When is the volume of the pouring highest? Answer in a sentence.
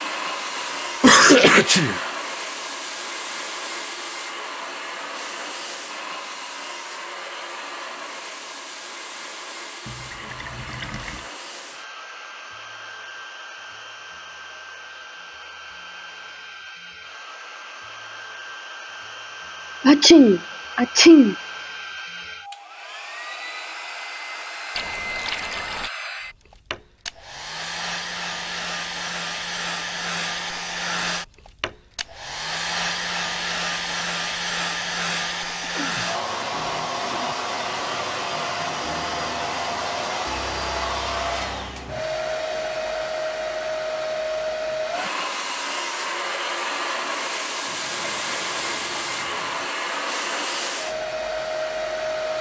The loudest moment of the pouring is at 25 seconds.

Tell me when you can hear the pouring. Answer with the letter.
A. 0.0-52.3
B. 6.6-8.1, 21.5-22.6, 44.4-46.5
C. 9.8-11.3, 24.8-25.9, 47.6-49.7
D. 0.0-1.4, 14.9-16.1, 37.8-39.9
C.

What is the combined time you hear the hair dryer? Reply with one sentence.
The hair dryer can be heard for 52 seconds in total.